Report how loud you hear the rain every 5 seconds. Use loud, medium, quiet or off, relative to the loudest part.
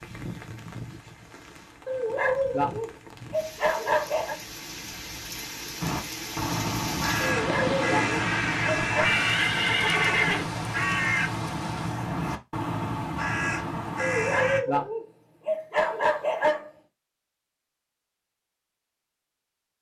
medium, loud, medium, off.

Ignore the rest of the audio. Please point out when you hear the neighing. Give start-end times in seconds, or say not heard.
8.9-10.4.